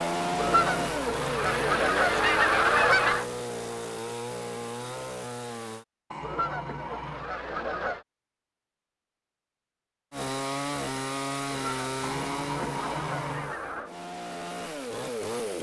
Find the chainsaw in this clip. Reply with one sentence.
You can hear the chainsaw from 0.0 to 5.8 s and from 10.1 to 15.5 s.